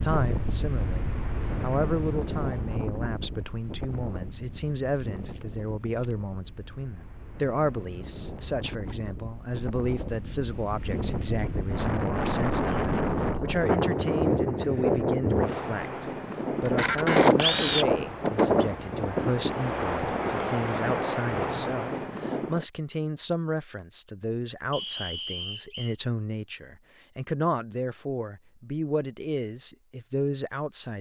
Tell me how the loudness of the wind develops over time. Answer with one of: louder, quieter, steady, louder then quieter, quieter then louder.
quieter then louder.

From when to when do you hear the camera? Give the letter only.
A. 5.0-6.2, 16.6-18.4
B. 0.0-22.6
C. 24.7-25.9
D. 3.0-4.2
A.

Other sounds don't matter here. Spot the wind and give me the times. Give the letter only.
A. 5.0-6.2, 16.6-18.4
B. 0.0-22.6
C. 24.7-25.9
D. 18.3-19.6
B.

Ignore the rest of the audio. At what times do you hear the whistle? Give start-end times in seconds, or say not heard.
24.7-25.9.